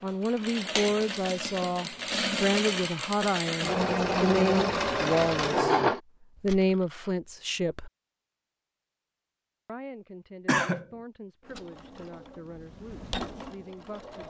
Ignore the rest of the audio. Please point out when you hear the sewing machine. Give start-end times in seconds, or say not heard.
0.1-6.0, 11.4-14.2.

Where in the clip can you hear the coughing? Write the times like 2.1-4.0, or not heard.
10.4-10.8.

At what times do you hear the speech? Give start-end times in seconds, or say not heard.
0.0-5.8, 6.4-7.9, 9.7-14.2.